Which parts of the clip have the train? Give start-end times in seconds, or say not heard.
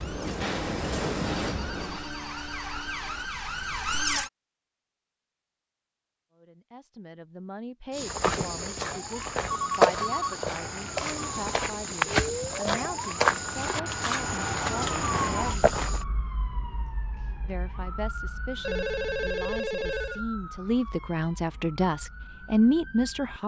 0.0-2.1.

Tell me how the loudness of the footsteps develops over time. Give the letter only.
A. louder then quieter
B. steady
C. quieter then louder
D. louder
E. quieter
A.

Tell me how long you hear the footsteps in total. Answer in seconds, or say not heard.
8 s.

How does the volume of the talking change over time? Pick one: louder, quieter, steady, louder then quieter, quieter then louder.
louder.